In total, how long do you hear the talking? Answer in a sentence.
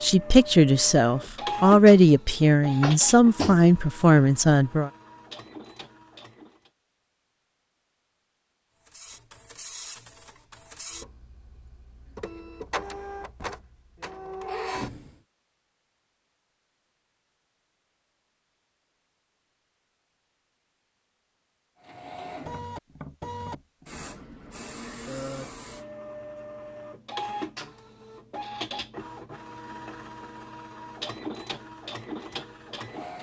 The talking can be heard for 5 seconds in total.